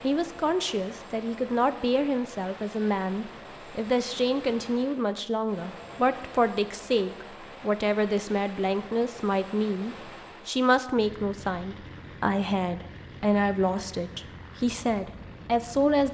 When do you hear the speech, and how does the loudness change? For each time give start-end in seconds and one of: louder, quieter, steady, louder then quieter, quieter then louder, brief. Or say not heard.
0.0-16.0 steady.